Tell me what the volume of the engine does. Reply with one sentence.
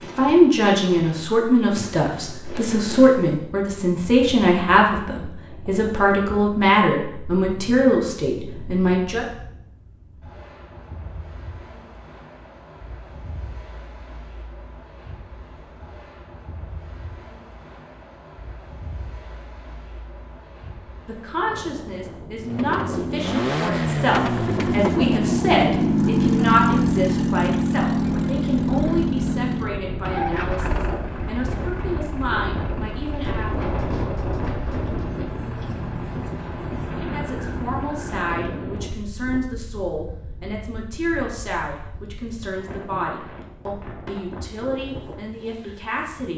The volume of the engine goes down.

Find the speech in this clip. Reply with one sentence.
You can hear the speech from 0.0 to 9.2 s, from 21.1 to 33.5 s and from 37.1 to 46.3 s.